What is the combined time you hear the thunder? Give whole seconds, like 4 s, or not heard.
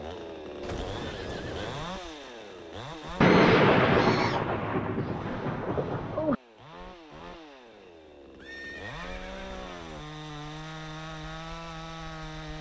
3 s.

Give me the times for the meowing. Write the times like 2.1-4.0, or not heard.
not heard.